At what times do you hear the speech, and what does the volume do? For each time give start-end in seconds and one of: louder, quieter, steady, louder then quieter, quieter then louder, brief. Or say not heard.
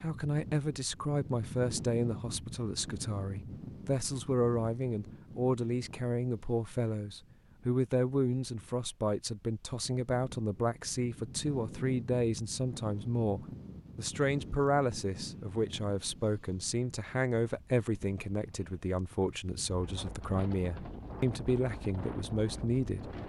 0.0-23.1 steady.